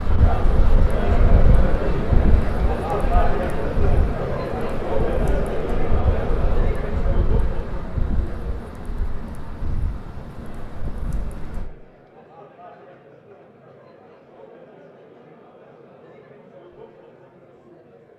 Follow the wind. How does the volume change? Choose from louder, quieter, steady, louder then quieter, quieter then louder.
quieter.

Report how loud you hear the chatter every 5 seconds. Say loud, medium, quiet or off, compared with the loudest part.
loud, loud, quiet, quiet.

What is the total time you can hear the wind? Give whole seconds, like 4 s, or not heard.
12 s.